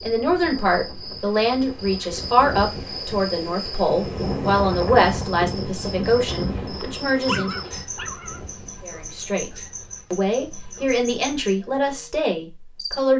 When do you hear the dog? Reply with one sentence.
You can hear the dog from 6.4 to 8.4 s.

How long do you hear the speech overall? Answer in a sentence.
The speech can be heard for 12 seconds in total.